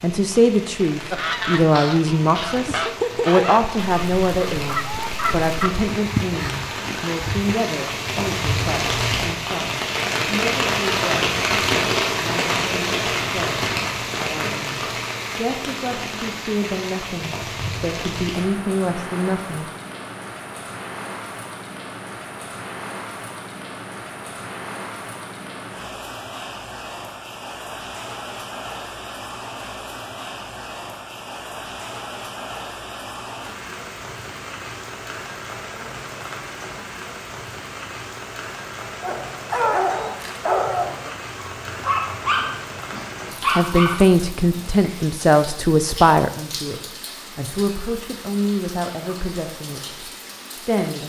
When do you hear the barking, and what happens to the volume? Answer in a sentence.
You can hear the barking from 39.0 to 45.0 s, at a steady volume.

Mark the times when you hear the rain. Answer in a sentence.
You can hear the rain from 0.0 to 51.0 s.